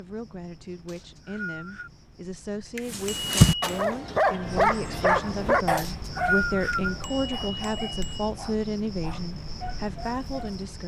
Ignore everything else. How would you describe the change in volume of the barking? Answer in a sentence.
The volume of the barking goes down.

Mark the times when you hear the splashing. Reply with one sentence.
You can't hear the splashing here.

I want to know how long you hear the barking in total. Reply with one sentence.
You can hear the barking for 8 seconds altogether.